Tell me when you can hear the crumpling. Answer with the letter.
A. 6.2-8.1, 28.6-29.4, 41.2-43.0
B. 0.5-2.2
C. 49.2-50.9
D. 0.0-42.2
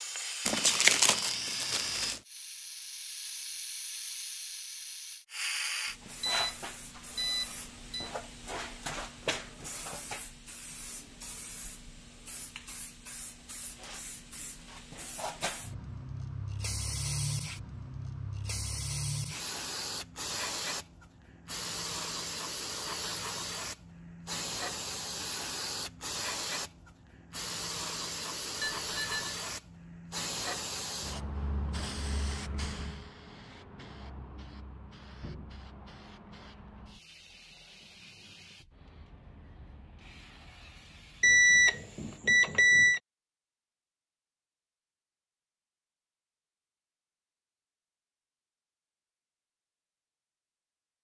B.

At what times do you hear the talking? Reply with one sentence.
You can't hear the talking here.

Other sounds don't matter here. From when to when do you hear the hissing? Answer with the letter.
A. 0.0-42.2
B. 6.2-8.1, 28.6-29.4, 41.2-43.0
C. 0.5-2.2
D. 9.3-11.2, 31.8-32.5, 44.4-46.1
A.